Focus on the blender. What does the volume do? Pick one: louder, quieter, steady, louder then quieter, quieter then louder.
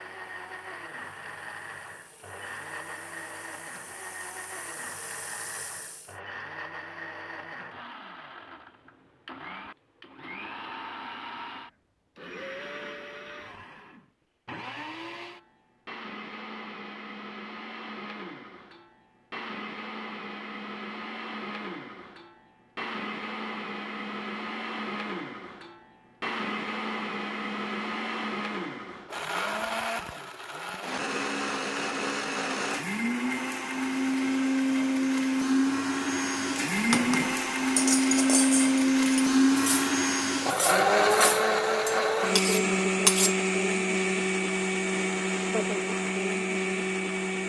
louder.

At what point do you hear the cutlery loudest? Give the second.
43 s.